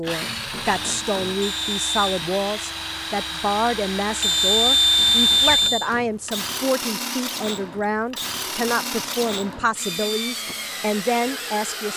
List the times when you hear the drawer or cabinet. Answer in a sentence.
The drawer or cabinet can't be heard in this clip.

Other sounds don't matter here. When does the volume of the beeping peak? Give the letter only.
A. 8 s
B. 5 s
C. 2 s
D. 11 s
B.